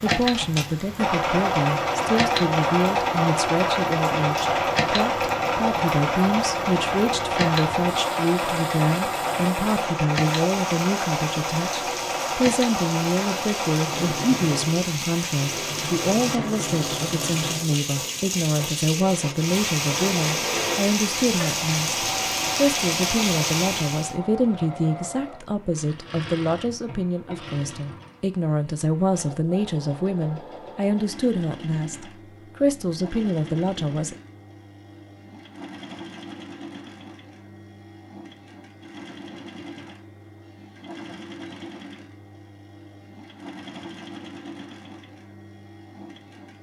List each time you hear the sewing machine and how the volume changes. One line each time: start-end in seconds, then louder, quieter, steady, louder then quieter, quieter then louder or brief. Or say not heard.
0.0-46.5 quieter.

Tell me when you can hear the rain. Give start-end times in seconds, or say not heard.
0.0-24.1.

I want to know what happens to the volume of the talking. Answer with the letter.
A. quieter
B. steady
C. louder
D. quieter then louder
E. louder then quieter
B.